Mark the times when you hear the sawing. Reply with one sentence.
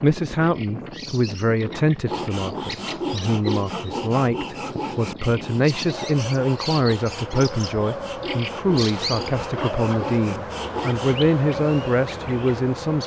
You can hear the sawing from 2.0 to 11.2 s.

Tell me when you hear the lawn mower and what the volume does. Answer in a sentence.
The lawn mower can't be heard in this clip.